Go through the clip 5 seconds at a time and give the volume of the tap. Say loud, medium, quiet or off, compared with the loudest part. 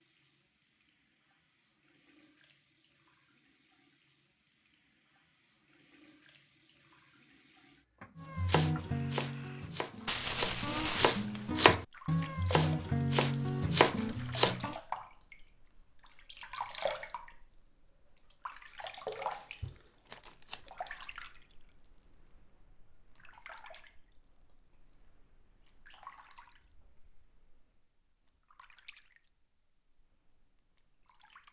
quiet, quiet, loud, loud, medium, quiet, quiet.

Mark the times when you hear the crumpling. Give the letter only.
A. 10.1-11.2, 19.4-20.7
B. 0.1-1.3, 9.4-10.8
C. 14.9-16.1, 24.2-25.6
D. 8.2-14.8
A.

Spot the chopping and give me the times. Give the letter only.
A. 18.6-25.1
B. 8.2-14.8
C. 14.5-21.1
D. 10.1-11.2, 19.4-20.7
B.